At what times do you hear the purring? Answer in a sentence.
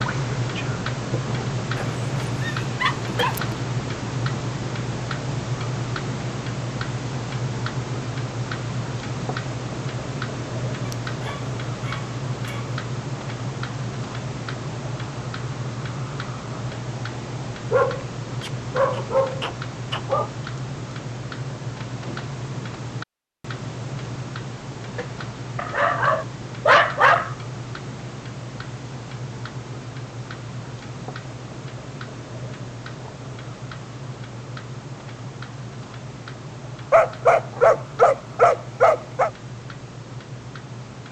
The purring can't be heard in this clip.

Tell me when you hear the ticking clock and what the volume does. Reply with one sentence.
The ticking clock can be heard from 0.0 to 41.0 s, getting quieter.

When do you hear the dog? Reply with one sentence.
You can hear the dog from 1.8 to 3.5 s, from 10.8 to 12.8 s, from 17.7 to 20.3 s, from 25.6 to 27.4 s and from 36.9 to 39.3 s.